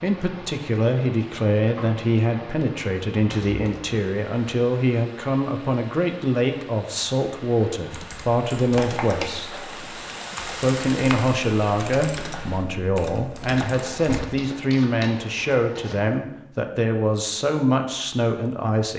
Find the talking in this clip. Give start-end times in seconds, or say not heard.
0.0-9.6, 10.6-18.9.